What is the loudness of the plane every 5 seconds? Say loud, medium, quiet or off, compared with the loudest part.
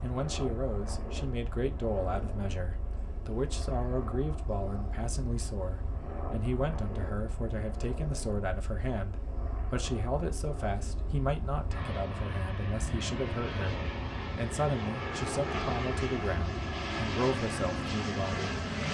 medium, medium, medium, loud.